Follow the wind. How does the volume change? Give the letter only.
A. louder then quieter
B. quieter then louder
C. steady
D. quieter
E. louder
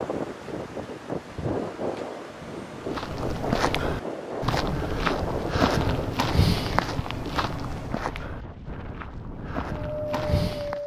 D.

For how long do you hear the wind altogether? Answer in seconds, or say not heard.
11 s.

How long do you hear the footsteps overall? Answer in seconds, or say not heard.
8 s.